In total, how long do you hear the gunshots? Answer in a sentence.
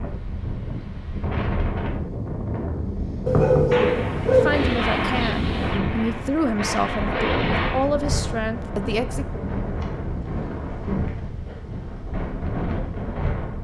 You can hear the gunshots for 4 seconds altogether.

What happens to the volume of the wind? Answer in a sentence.
The loudness of the wind stays about the same.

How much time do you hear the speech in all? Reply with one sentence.
The speech can be heard for 5 seconds in total.